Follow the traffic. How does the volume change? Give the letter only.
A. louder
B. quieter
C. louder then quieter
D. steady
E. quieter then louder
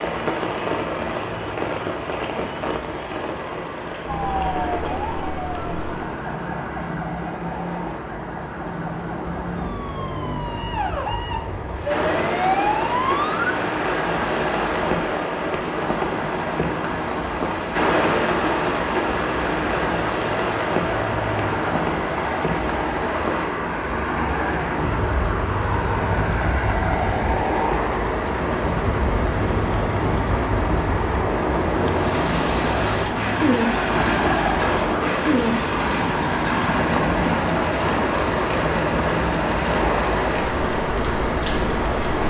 A.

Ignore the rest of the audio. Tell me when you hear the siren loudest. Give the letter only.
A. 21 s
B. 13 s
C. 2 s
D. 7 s
B.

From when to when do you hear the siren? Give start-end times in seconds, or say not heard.
4.0-13.6.